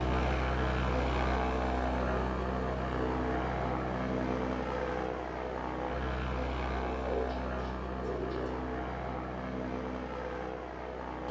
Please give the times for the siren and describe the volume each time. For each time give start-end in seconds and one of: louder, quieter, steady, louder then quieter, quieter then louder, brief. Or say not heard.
not heard.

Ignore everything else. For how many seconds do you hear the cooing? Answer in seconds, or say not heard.
2 s.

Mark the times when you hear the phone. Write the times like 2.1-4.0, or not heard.
not heard.